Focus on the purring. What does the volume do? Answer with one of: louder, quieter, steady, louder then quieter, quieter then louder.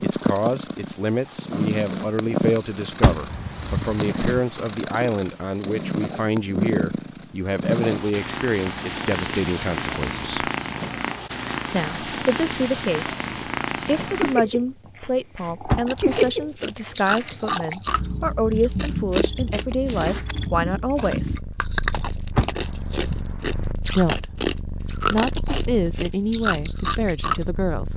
quieter.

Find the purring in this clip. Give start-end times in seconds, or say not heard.
0.0-27.9.